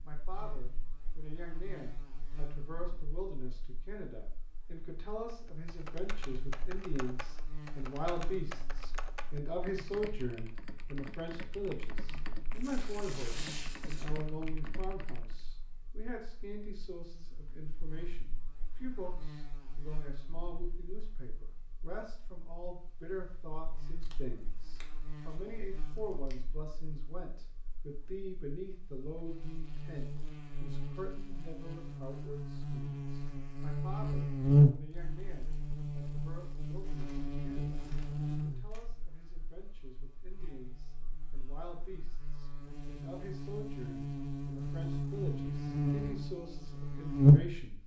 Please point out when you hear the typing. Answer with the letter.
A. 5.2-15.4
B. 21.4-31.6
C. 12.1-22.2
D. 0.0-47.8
A.